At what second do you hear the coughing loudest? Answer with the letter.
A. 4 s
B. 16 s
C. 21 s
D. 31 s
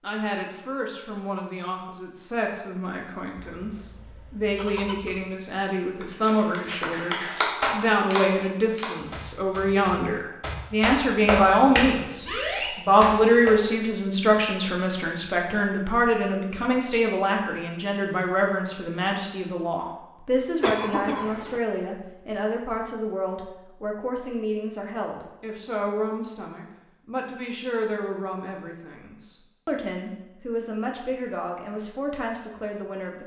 C.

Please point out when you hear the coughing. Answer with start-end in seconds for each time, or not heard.
3.4-5.3, 20.6-21.6.